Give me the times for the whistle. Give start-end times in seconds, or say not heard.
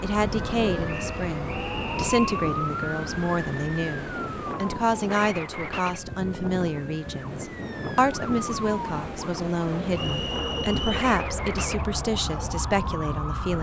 0.8-2.3, 9.9-11.0.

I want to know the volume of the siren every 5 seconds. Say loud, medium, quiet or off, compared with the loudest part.
loud, medium, loud.